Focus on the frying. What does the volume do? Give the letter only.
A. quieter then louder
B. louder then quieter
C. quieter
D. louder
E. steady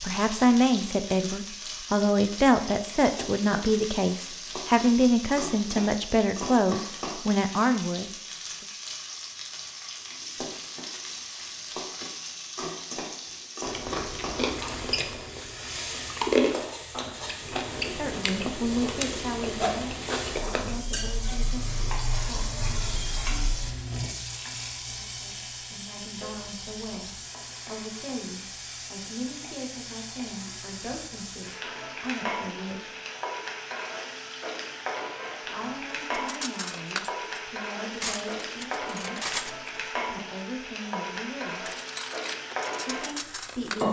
E.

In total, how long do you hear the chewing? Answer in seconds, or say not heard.
7 s.